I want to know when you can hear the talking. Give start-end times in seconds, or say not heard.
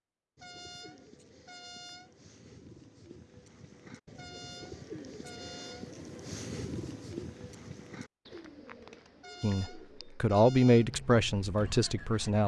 9.4-12.4.